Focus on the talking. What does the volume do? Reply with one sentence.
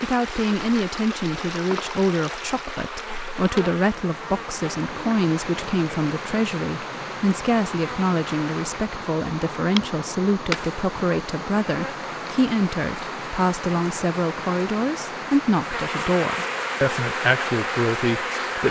The loudness of the talking stays about the same.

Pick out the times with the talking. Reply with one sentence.
You can hear the talking from 0.0 to 18.6 s.